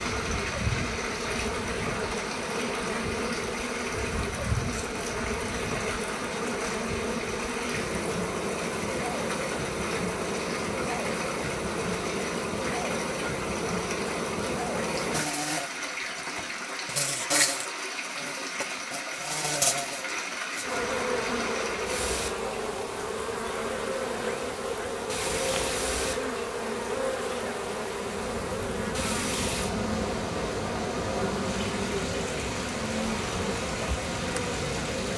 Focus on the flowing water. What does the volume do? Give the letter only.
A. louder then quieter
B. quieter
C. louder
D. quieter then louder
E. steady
E.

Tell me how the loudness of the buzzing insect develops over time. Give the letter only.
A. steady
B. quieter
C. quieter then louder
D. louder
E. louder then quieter
A.